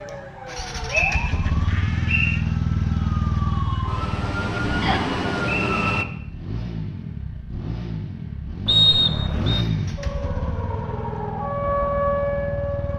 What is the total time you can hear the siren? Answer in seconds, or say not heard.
9 s.